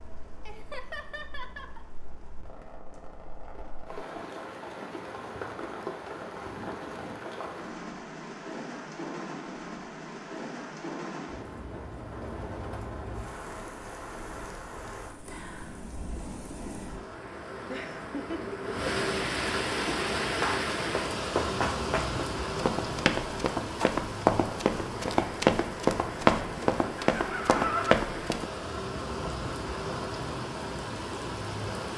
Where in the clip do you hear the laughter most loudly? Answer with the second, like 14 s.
28 s.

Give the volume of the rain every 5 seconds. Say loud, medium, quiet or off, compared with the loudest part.
quiet, medium, medium, loud, loud, loud, loud.